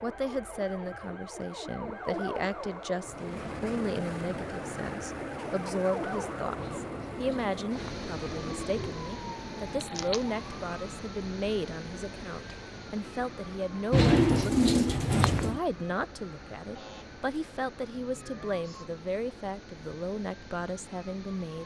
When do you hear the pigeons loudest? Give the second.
14 s.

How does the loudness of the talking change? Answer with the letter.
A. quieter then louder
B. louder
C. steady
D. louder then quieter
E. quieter
C.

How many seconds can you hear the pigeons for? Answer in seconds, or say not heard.
4 s.